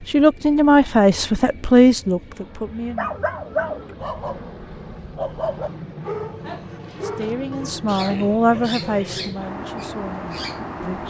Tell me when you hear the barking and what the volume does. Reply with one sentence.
You can hear the barking from 3.0 to 10.6 s, getting quieter.